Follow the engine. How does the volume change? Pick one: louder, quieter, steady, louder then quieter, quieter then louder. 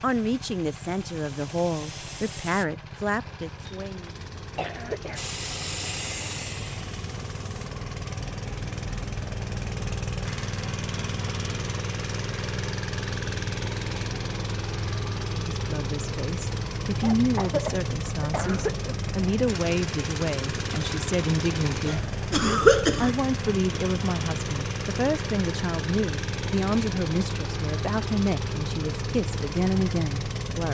louder.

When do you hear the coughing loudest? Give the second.
23 s.